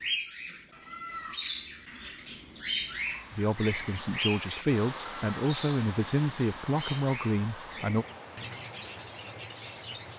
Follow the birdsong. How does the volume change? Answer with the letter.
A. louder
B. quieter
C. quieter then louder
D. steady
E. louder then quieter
B.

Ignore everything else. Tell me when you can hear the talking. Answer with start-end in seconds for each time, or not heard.
3.3-8.1.